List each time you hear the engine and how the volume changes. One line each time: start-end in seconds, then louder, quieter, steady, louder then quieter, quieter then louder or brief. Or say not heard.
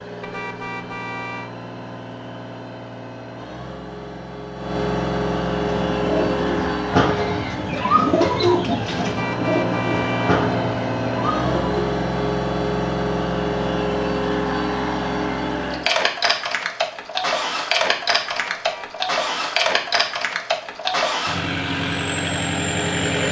0.0-23.2 louder.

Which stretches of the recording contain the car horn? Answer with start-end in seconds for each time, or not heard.
0.2-1.5, 9.1-10.4, 18.5-19.0.